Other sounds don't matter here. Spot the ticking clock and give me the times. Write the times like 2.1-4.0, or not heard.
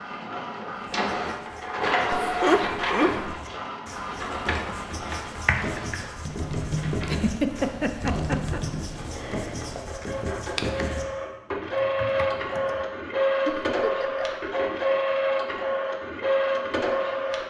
not heard.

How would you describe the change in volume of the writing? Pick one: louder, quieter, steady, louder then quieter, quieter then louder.
louder.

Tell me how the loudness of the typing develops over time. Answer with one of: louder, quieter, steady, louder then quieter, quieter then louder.
quieter.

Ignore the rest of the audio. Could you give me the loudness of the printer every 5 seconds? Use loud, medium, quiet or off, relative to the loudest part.
loud, quiet, loud, loud.